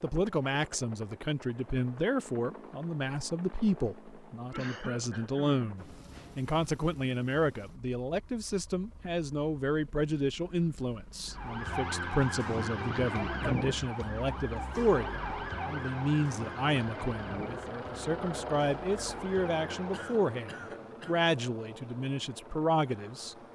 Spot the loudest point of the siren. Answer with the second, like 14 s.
13 s.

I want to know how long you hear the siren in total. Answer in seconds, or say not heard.
9 s.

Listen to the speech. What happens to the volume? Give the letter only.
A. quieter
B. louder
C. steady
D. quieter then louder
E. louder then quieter
C.